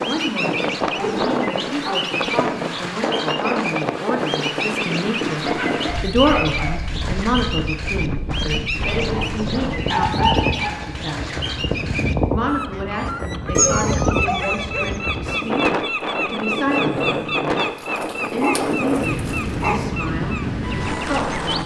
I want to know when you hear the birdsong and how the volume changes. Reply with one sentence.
The birdsong can be heard from 0.0 to 21.6 s, at a steady volume.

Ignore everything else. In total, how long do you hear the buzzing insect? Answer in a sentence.
You can't hear the buzzing insect here.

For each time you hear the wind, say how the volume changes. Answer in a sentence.
The wind can be heard from 0.0 to 21.6 s, at a steady volume.